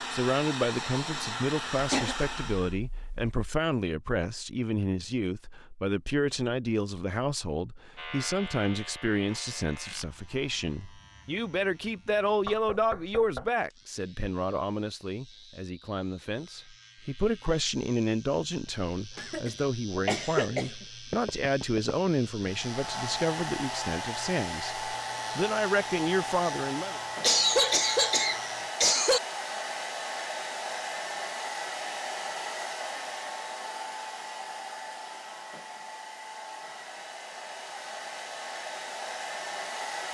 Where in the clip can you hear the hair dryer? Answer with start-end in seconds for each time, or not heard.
0.0-2.8, 22.4-40.0.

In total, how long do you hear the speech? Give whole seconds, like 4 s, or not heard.
27 s.